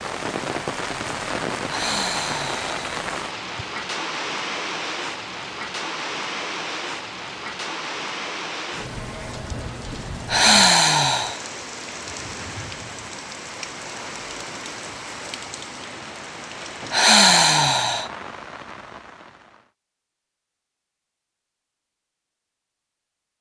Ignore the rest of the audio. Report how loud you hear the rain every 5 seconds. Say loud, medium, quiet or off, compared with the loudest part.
loud, loud, medium, medium, off.